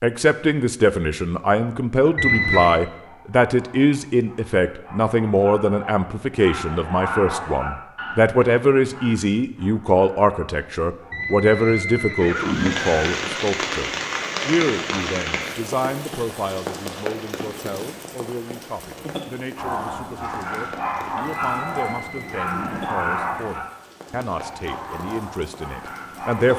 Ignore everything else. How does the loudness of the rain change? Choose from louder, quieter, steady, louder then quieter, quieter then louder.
quieter.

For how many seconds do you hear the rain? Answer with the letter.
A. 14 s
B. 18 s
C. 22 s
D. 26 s
A.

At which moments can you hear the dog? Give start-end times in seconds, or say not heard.
2.1-11.4, 19.6-26.5.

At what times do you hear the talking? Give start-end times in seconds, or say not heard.
0.0-26.5.